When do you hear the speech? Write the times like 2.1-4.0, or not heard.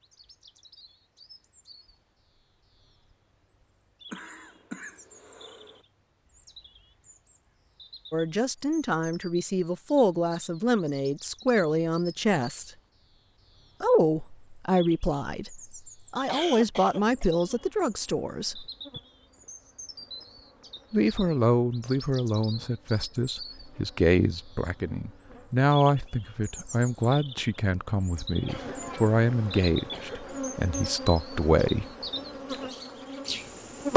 8.1-12.7, 13.8-18.6, 20.9-31.9.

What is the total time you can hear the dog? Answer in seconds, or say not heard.
not heard.